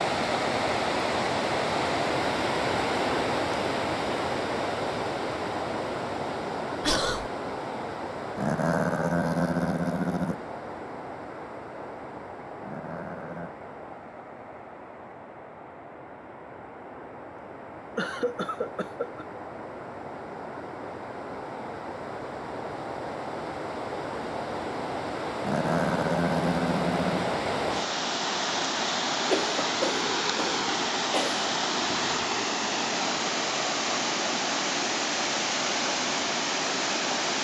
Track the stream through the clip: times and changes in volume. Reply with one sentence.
The stream can be heard from 0.0 to 37.3 s, getting quieter then louder.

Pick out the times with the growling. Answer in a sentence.
The growling can be heard from 8.3 to 10.3 s, from 12.6 to 13.5 s and from 25.4 to 27.4 s.